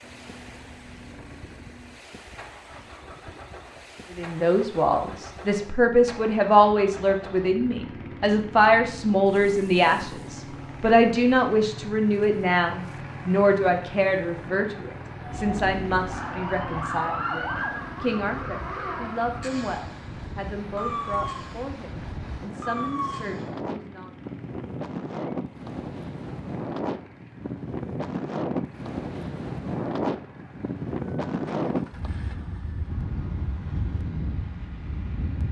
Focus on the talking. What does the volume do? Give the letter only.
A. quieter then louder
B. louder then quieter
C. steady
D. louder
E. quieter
E.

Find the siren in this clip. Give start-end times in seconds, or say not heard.
15.2-23.5.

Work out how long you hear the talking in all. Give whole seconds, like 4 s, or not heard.
20 s.